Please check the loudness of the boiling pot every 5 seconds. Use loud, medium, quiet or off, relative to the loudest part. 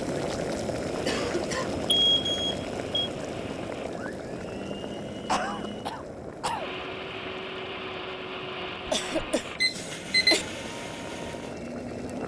loud, medium, medium.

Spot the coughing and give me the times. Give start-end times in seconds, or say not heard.
1.1-1.9, 5.2-6.7, 8.4-10.4.